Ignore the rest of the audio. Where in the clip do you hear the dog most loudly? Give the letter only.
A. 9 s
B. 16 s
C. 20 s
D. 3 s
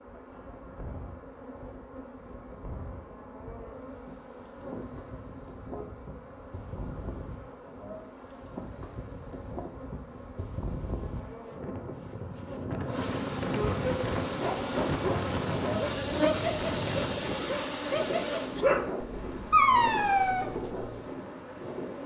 C.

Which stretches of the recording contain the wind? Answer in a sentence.
You can hear the wind from 0.0 to 22.0 s.